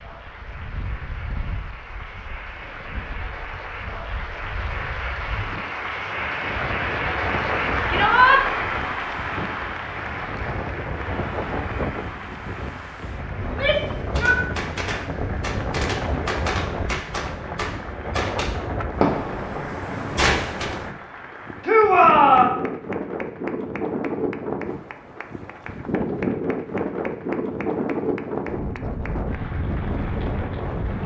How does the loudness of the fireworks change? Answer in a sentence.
The loudness of the fireworks goes up.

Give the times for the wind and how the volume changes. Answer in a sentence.
The wind can be heard from 0.0 to 31.0 s, getting louder.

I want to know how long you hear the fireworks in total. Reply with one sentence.
The fireworks can be heard for 7 seconds in total.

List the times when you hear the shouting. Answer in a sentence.
You can hear the shouting from 7.9 to 8.4 s, from 13.4 to 14.4 s and from 21.6 to 22.5 s.